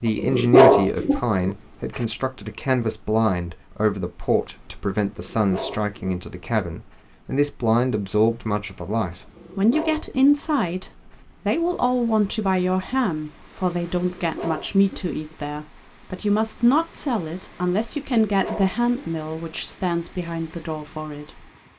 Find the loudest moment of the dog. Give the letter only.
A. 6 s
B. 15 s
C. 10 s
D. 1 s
D.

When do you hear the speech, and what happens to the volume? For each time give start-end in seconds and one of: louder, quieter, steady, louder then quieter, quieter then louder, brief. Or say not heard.
0.0-21.3 steady.